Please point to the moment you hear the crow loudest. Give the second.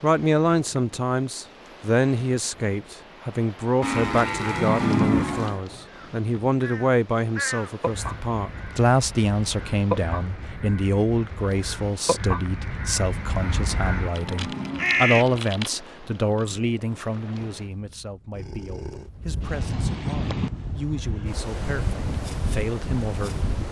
15 s.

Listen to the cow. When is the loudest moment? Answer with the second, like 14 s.
5 s.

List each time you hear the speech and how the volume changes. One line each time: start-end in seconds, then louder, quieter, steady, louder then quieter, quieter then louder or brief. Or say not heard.
0.0-23.5 quieter.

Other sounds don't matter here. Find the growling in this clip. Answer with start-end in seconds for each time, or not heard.
18.3-19.1.